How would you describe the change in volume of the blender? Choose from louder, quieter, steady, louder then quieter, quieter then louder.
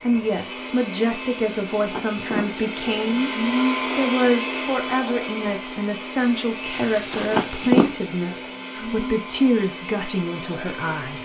louder then quieter.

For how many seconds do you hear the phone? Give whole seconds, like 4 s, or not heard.
2 s.